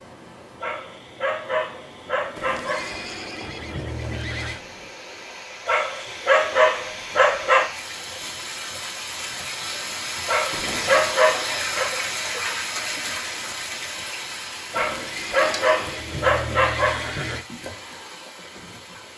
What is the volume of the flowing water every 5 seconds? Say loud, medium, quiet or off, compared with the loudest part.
quiet, medium, loud, medium.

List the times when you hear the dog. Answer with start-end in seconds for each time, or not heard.
0.6-3.0, 5.7-7.7, 10.2-11.9, 14.7-17.2.